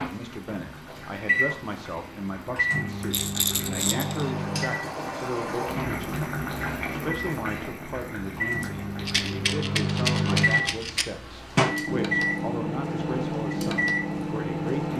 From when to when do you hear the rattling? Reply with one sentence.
The rattling can be heard from 3.1 to 4.3 s and from 9.1 to 11.1 s.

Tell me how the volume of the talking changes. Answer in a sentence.
The volume of the talking stays about the same.